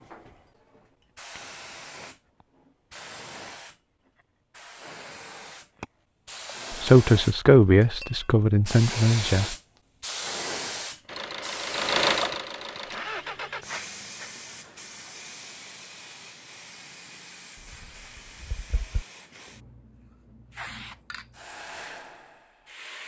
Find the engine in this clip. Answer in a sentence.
The engine can be heard from 11.1 to 13.7 s.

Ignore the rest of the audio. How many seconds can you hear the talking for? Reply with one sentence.
The talking can be heard for 3 seconds in total.